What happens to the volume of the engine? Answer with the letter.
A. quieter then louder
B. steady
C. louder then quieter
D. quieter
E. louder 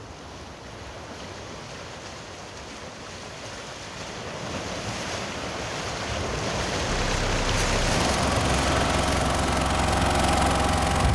E.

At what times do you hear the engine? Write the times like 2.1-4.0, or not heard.
6.8-11.0.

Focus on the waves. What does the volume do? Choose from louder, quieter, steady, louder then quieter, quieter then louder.
louder.